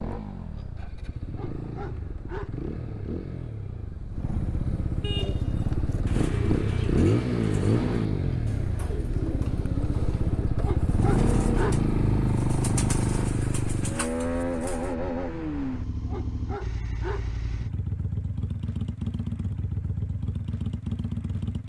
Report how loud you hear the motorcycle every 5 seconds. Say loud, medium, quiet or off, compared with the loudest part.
medium, loud, loud, medium, medium.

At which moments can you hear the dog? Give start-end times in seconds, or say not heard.
1.3-2.6, 10.6-11.9, 16.1-17.4.